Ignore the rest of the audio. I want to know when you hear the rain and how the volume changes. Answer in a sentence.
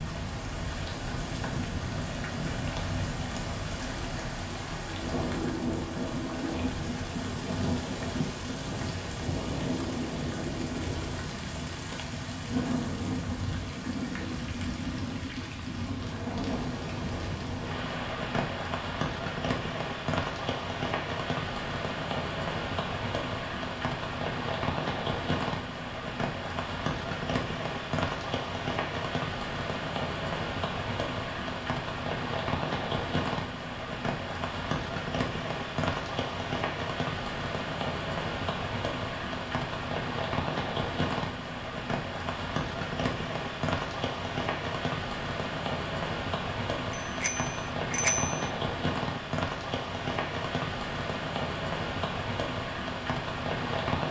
The rain can be heard from 0.0 to 54.0 s, at a steady volume.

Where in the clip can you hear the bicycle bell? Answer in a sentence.
The bicycle bell can be heard from 46.9 to 48.4 s.